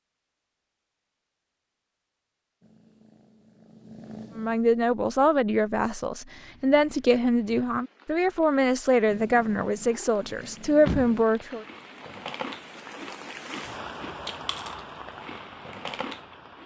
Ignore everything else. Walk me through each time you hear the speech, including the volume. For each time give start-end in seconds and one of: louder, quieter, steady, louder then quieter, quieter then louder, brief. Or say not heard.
4.3-11.7 steady.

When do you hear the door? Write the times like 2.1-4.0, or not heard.
10.4-11.7.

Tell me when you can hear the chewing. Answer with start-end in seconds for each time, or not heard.
11.6-16.6.